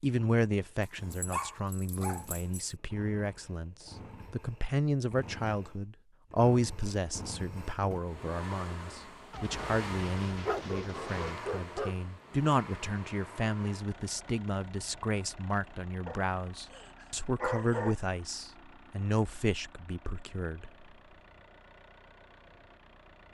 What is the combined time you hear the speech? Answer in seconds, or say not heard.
21 s.